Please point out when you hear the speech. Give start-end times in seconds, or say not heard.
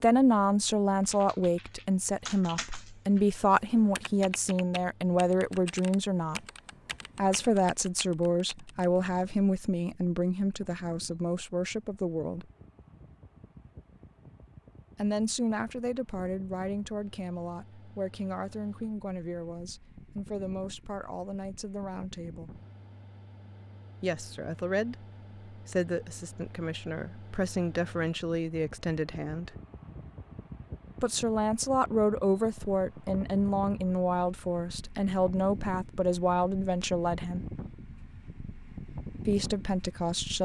0.0-6.4, 7.2-12.4, 14.9-22.6, 24.0-29.6, 31.0-37.5, 39.2-40.3.